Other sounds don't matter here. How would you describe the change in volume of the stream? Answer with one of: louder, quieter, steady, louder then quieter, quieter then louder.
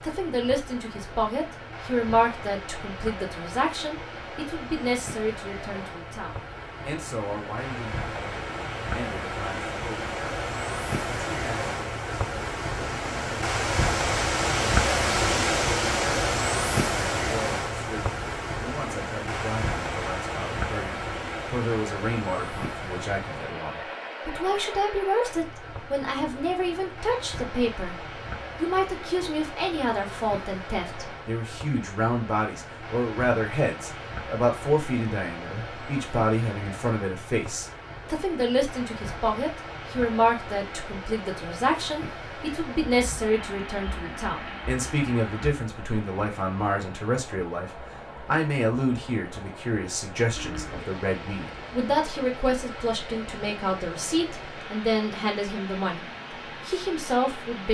louder then quieter.